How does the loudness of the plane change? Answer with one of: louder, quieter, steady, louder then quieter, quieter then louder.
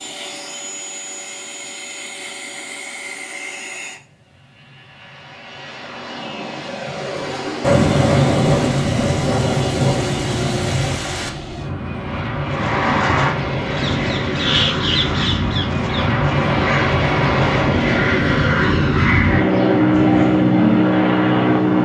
louder.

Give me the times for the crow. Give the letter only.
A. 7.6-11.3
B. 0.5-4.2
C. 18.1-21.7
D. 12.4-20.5
D.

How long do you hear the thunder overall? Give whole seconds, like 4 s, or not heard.
4 s.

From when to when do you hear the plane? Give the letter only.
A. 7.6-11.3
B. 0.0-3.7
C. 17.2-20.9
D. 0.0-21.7
D.